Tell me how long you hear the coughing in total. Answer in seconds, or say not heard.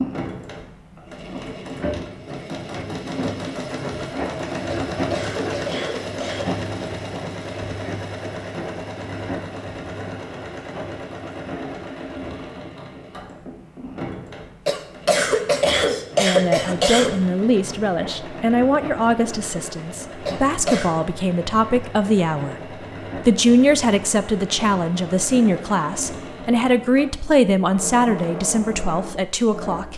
5 s.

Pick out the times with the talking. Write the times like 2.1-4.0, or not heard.
16.1-29.9.